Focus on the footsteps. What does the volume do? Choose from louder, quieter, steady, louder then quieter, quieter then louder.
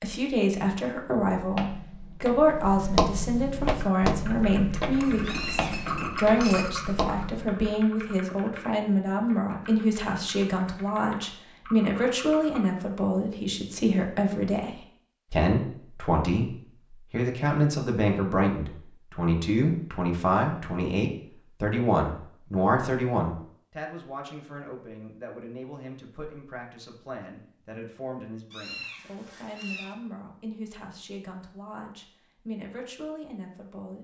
louder then quieter.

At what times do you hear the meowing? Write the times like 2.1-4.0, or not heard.
5.2-5.9, 28.5-29.9.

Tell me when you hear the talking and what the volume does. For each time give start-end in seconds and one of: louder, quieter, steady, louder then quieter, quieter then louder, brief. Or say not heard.
0.0-33.9 quieter.